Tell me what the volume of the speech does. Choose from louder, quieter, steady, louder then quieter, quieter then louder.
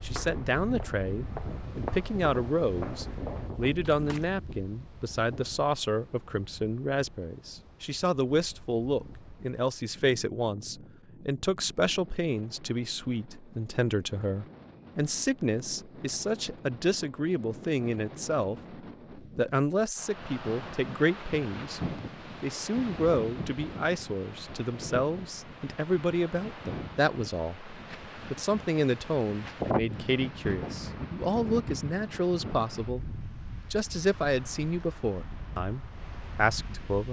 steady.